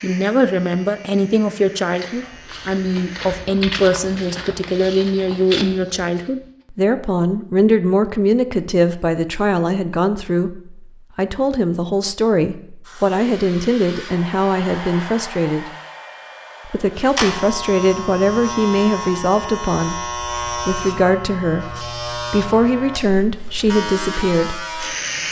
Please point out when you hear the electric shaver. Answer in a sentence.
You can hear the electric shaver from 0.0 to 3.5 s and from 17.1 to 25.2 s.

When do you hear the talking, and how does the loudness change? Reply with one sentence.
You can hear the talking from 0.0 to 15.7 s, at a steady volume; and from 16.6 to 24.6 s, at a steady volume.